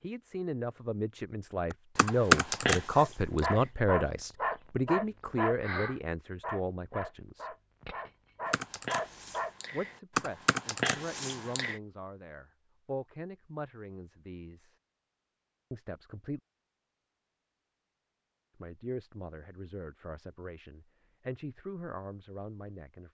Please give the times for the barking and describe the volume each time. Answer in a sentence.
The barking can be heard from 2.9 to 9.5 s, getting quieter then louder.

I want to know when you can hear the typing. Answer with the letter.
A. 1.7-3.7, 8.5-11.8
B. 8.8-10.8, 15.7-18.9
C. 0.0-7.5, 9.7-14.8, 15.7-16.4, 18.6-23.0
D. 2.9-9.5
A.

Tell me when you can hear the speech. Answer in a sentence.
The speech can be heard from 0.0 to 7.5 s, from 9.7 to 14.8 s, from 15.7 to 16.4 s and from 18.6 to 23.0 s.